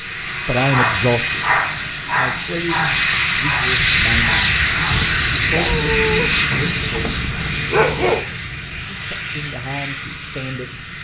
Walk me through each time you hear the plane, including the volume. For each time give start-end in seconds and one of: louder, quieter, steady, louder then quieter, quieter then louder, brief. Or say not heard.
0.0-10.9 louder then quieter.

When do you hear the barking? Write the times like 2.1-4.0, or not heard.
0.6-8.2.